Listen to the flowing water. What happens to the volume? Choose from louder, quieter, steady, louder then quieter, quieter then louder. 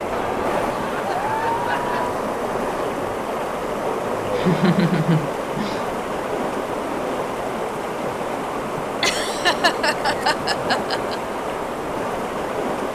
steady.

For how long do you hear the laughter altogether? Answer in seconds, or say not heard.
6 s.